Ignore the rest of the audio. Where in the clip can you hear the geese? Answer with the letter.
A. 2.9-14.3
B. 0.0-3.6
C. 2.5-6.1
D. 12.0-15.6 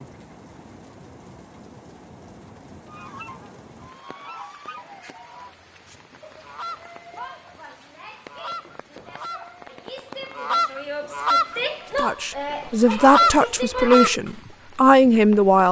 A.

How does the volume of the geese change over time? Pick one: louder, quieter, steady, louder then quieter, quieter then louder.
louder.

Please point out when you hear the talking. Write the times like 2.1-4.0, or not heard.
12.0-15.6.